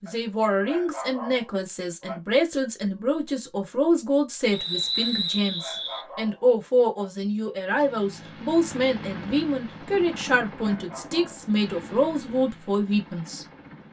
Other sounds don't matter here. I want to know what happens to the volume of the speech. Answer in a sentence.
The volume of the speech stays about the same.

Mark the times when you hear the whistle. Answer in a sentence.
You can hear the whistle from 4.5 to 6.0 s.